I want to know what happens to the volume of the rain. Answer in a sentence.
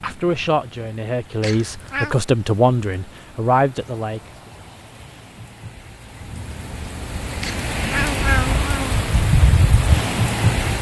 The volume of the rain goes up.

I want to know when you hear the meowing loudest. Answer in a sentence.
The volume of the meowing peaks at 8 seconds.